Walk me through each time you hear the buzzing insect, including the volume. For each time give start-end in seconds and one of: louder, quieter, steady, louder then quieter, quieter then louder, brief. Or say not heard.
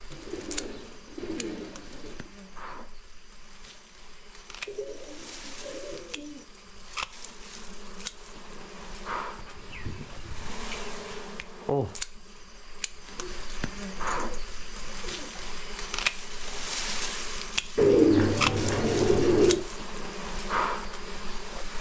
0.0-21.7 louder.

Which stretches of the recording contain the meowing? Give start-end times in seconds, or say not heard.
not heard.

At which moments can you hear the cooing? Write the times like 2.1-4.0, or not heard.
0.1-2.3, 4.7-6.5, 9.3-11.2, 13.2-15.5, 17.8-19.6.